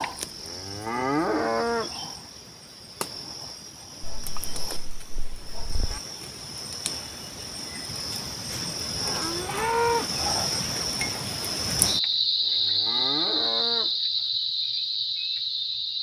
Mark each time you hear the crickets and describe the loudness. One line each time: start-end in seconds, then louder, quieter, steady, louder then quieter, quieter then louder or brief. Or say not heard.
0.0-15.9 louder.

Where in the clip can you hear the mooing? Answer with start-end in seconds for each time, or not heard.
0.0-1.9, 4.0-6.0, 8.5-10.5, 12.0-13.9.